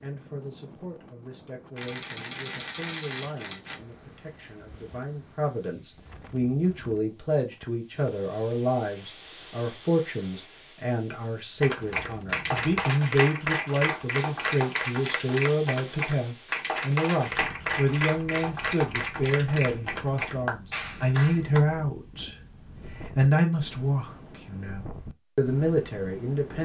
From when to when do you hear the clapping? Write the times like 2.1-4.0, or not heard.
11.6-21.6.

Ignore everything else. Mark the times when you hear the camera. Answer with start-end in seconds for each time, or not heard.
1.8-3.8.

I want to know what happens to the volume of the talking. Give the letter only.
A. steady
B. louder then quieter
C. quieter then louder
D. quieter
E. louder
E.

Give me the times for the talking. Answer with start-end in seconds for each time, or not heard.
0.0-22.4, 23.0-26.5.